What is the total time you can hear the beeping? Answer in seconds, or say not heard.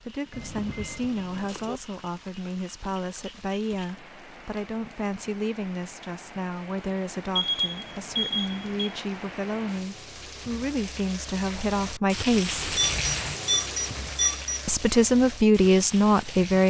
5 s.